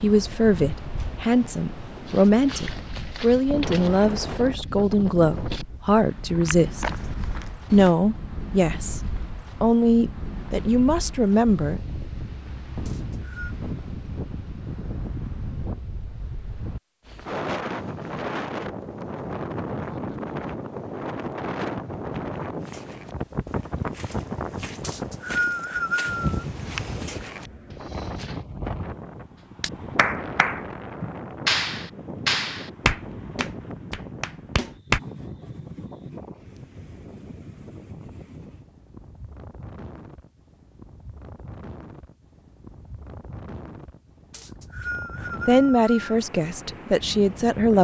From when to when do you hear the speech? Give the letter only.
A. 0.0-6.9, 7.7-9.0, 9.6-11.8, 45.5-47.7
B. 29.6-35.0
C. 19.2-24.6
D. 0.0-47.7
A.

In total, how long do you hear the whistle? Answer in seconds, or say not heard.
4 s.